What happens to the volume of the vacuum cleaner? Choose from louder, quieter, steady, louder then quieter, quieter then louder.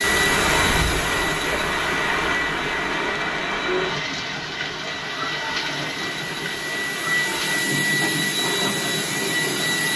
quieter then louder.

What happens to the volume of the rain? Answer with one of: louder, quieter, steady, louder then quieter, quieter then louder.
quieter.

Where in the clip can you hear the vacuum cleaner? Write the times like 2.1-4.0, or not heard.
0.0-9.9.